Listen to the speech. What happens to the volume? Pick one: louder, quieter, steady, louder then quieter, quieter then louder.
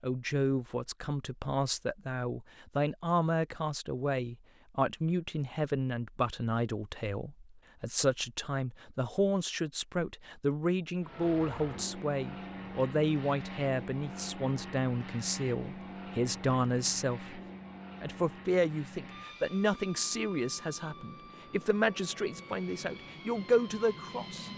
steady.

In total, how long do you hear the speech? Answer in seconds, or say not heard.
24 s.